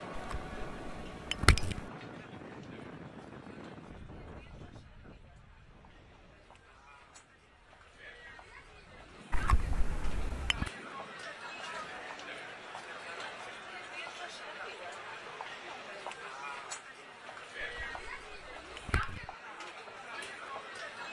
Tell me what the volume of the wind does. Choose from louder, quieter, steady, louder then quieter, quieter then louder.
quieter then louder.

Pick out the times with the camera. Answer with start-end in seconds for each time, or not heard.
0.1-1.8, 9.3-10.7, 17.6-19.2.